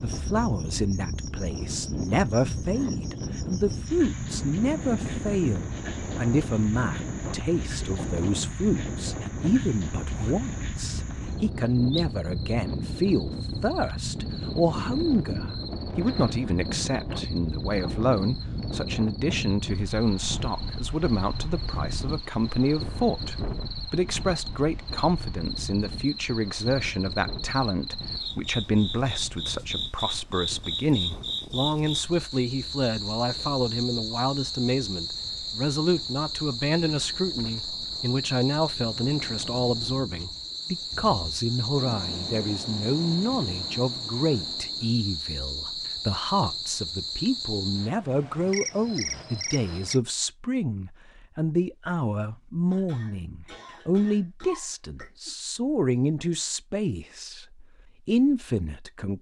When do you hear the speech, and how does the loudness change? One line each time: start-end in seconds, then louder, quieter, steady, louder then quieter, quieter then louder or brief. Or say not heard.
0.0-59.1 steady.